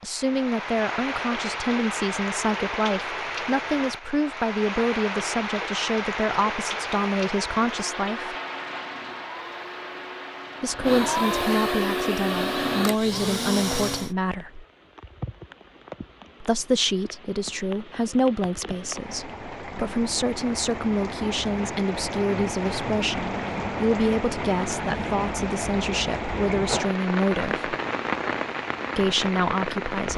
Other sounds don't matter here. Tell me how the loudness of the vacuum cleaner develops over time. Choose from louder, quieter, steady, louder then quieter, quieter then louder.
louder.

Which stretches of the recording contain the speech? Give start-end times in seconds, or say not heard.
0.0-8.3, 10.6-14.7, 16.4-27.7, 28.9-30.1.